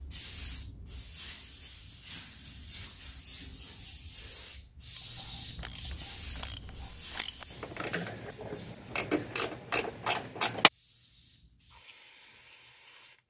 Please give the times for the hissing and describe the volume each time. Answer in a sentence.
You can hear the hissing from 0.0 to 13.2 s, getting quieter.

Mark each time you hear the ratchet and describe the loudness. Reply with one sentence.
You can hear the ratchet from 5.0 to 10.7 s, getting louder.